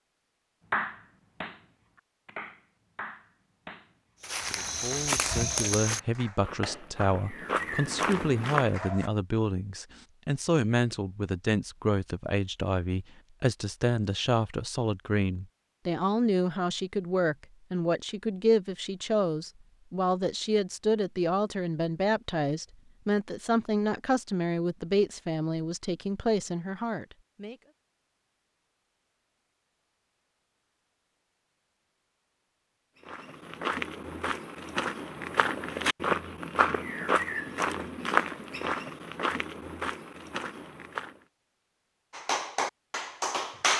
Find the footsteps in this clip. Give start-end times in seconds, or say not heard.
4.2-8.8, 33.0-41.2.